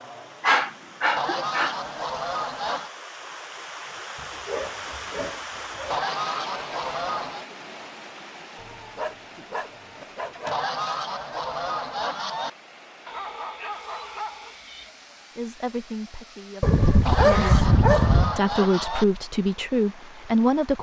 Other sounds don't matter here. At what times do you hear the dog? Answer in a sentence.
You can hear the dog from 0.4 to 2.2 s, from 4.2 to 6.0 s, from 8.6 to 10.6 s, from 13.1 to 14.9 s and from 16.6 to 18.4 s.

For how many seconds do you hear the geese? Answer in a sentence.
You can hear the geese for 7 seconds altogether.